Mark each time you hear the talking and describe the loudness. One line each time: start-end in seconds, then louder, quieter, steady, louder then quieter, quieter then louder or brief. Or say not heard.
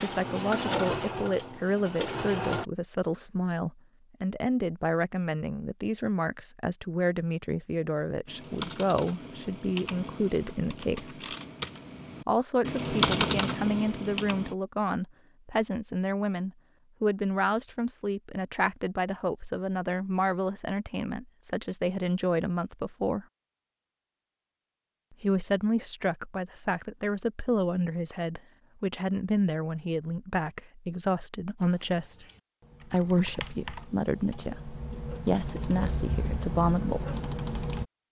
0.0-11.2 steady
12.2-23.2 steady
25.2-32.2 steady
32.9-37.0 louder.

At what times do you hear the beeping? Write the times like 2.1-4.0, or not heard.
not heard.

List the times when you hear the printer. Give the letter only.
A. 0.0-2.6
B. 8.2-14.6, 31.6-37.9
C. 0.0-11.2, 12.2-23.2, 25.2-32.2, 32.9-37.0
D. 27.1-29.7
A.